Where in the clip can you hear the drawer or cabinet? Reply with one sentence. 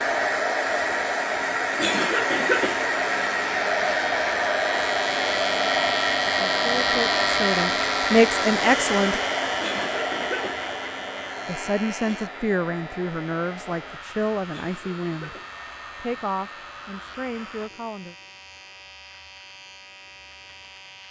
The drawer or cabinet can't be heard in this clip.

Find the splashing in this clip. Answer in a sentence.
The splashing can't be heard in this clip.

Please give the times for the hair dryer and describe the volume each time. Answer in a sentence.
You can hear the hair dryer from 0.0 to 17.7 s, getting quieter.